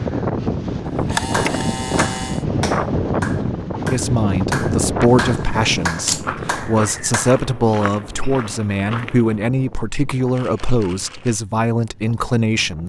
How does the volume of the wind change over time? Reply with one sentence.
The volume of the wind goes down.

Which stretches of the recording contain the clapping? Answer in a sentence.
You can hear the clapping from 1.3 to 7.3 s.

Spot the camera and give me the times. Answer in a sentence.
The camera can be heard from 0.8 to 2.5 s, from 5.2 to 6.2 s and from 10.3 to 11.4 s.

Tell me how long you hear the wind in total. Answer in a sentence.
You can hear the wind for 13 seconds altogether.